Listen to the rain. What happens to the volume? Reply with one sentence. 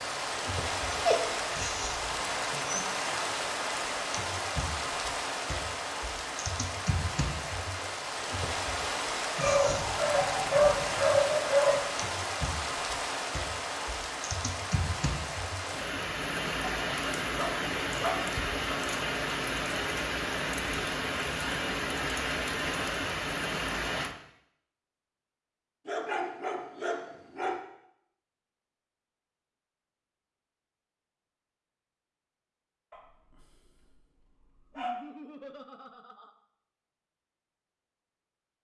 The volume of the rain stays about the same.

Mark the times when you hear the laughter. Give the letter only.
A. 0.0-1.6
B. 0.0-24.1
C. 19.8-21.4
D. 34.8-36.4
D.